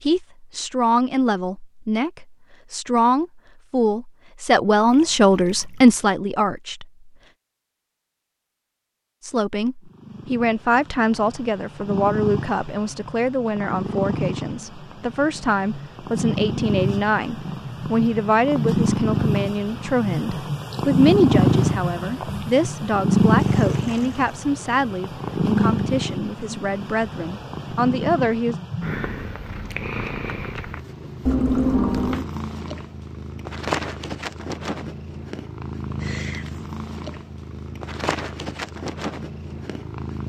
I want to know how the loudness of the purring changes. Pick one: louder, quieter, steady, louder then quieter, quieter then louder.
louder then quieter.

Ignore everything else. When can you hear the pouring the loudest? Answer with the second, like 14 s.
32 s.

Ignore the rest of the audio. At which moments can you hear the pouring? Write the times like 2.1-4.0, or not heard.
4.9-6.0, 23.4-24.4, 31.2-32.2.